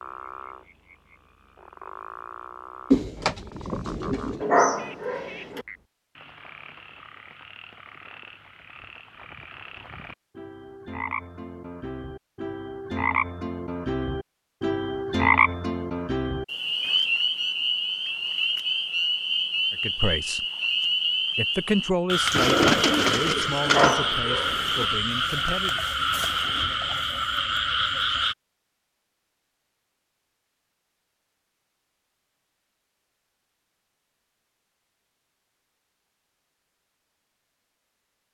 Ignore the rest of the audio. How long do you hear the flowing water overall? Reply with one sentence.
The flowing water can't be heard in this clip.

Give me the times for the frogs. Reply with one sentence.
The frogs can be heard from 0.0 to 28.4 s.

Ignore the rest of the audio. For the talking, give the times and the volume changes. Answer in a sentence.
You can hear the talking briefly from 19.8 to 20.4 s; and from 21.4 to 25.9 s, getting quieter.